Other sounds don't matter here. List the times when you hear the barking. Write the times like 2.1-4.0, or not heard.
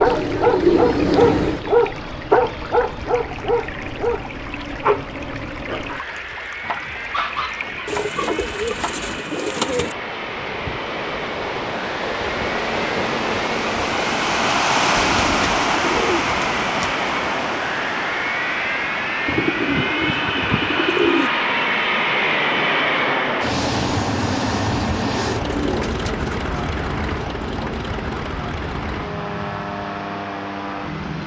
0.0-9.1.